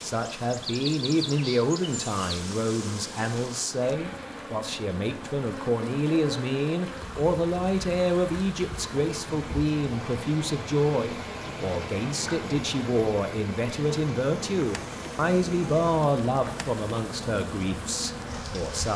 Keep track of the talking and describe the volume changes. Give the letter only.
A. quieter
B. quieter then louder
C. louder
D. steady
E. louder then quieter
D.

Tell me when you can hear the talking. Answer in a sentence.
The talking can be heard from 0.0 to 18.9 s.